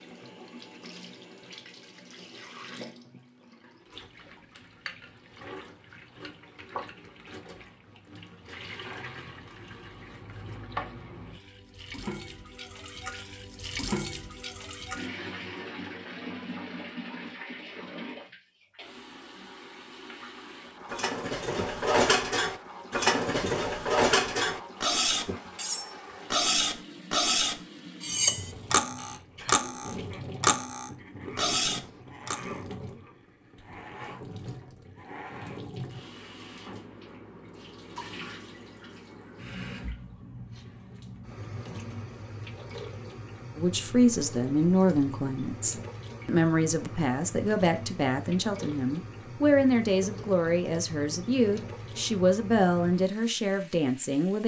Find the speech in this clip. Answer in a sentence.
The speech can be heard from 43.5 to 54.4 s.